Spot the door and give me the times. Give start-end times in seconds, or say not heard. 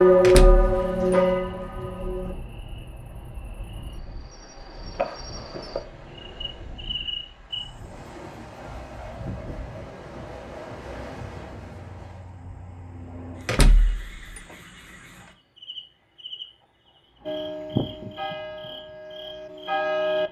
0.2-1.1, 13.4-14.4.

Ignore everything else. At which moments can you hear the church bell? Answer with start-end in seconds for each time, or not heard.
0.0-2.4, 17.2-20.2.